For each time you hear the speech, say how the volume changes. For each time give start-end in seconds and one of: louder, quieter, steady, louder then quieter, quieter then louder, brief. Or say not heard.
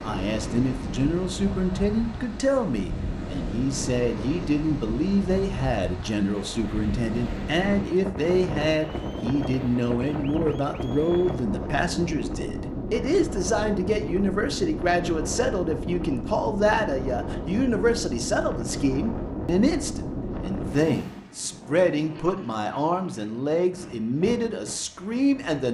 0.0-25.7 steady.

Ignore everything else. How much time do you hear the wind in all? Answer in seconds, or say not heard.
26 s.